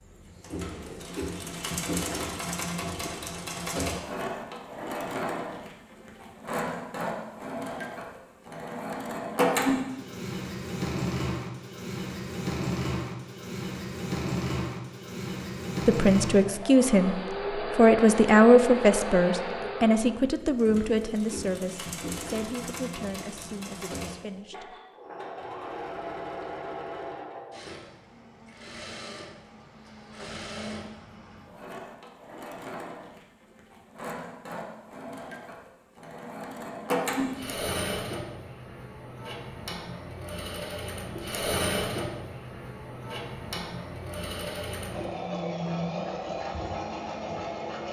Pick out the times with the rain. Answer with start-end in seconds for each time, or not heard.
not heard.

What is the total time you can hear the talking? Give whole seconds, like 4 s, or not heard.
9 s.